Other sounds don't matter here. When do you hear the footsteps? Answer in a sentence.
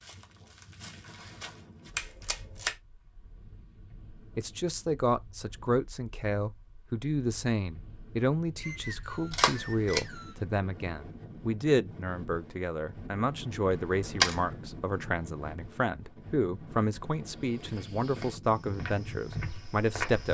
You can hear the footsteps from 0.0 to 2.0 s and from 17.4 to 20.2 s.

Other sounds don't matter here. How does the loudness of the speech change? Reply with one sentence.
The loudness of the speech stays about the same.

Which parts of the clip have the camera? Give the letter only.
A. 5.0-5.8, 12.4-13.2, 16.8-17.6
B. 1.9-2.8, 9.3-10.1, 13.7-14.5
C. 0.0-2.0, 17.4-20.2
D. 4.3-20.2
B.